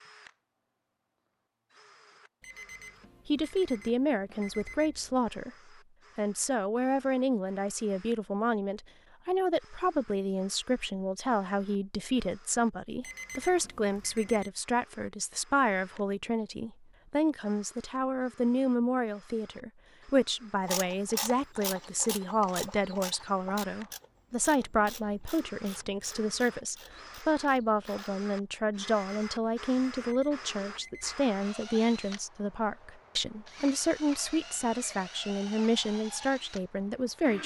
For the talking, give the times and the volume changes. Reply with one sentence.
You can hear the talking briefly from 3.2 to 5.5 s; and from 6.2 to 37.4 s, at a steady volume.